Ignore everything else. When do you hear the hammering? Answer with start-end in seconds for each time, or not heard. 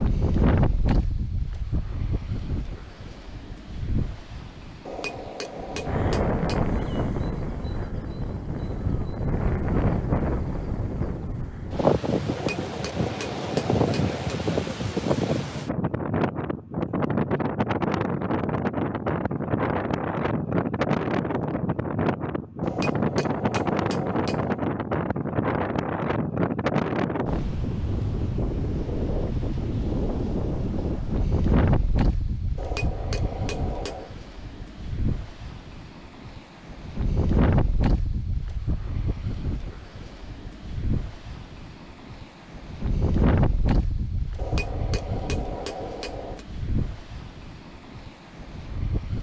4.8-6.7, 12.2-14.3, 22.6-24.6, 32.5-34.1, 44.4-46.5.